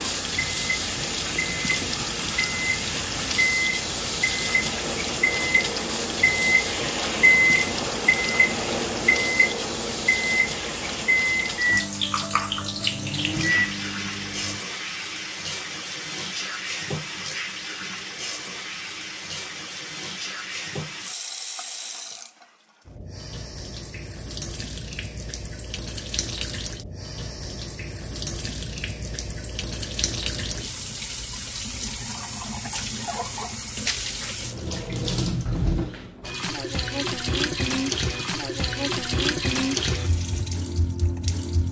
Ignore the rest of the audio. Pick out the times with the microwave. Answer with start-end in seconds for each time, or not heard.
0.0-14.6.